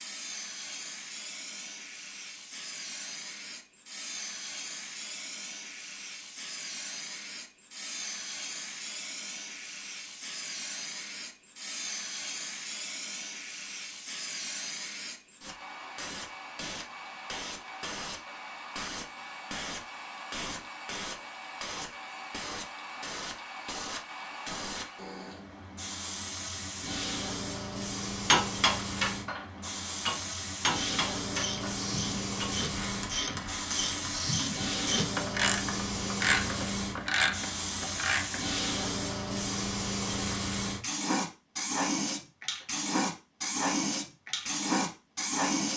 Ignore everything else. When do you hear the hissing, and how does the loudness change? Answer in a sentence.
The hissing can be heard from 0.0 to 45.7 s, getting louder.